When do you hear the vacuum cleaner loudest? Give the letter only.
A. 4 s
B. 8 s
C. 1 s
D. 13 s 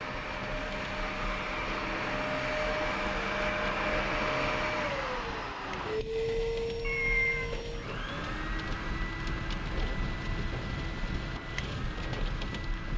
A.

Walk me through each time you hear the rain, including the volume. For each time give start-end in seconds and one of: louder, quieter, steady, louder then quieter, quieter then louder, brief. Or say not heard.
0.0-12.9 louder.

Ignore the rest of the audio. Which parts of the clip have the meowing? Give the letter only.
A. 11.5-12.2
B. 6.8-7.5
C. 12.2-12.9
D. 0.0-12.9
B.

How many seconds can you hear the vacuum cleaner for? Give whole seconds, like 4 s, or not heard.
13 s.